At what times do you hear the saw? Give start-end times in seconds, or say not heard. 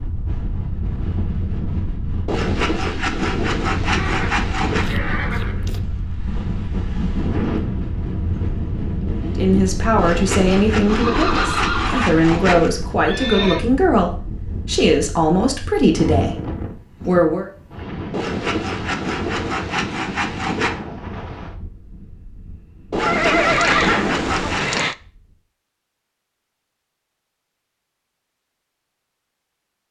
2.2-4.8, 9.9-12.7, 18.1-20.8, 22.9-24.6.